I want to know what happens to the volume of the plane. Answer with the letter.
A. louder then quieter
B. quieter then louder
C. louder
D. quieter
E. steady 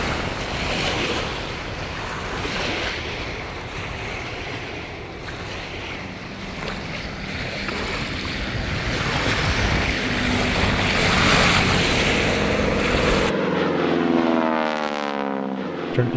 C.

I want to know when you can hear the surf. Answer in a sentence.
You can hear the surf from 0.0 to 13.3 s.